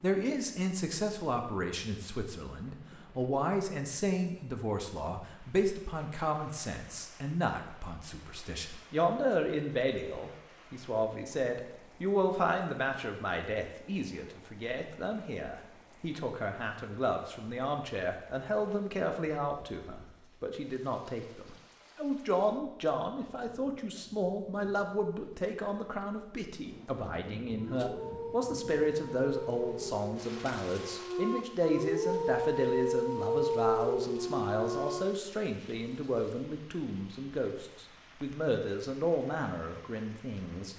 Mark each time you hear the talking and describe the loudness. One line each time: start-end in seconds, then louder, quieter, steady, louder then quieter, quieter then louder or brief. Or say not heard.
0.0-40.7 steady.